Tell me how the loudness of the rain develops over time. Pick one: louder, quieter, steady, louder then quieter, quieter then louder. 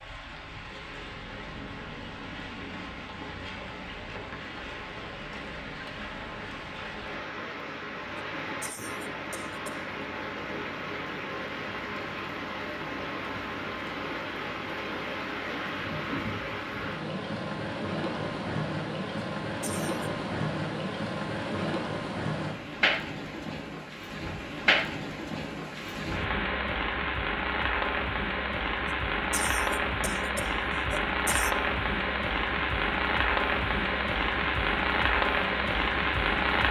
louder.